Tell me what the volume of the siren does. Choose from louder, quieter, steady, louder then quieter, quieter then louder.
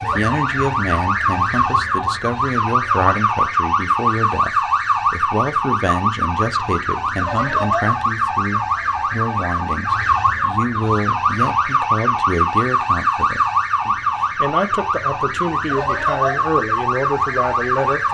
steady.